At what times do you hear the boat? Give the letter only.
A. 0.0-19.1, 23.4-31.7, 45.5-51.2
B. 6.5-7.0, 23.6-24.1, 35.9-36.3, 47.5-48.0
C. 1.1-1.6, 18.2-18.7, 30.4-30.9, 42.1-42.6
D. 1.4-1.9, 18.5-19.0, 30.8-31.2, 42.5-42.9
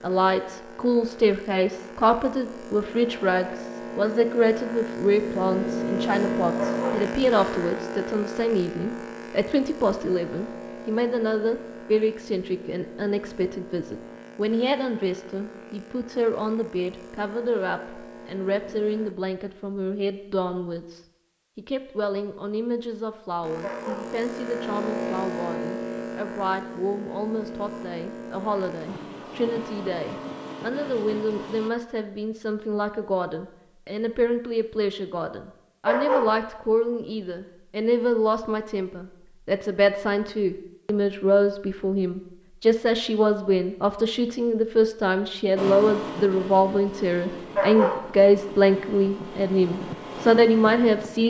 A.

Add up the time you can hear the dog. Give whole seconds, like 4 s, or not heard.
2 s.